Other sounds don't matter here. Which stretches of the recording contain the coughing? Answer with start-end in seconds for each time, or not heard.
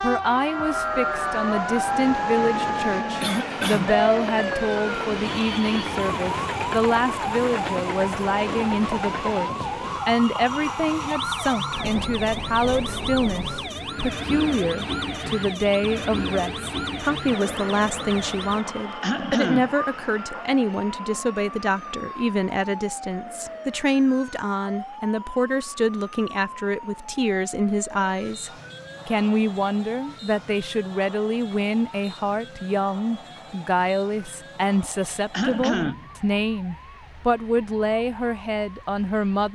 3.2-4.0, 19.0-19.8, 35.3-36.0.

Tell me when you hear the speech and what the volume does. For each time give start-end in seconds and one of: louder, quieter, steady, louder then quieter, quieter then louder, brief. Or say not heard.
0.0-39.5 steady.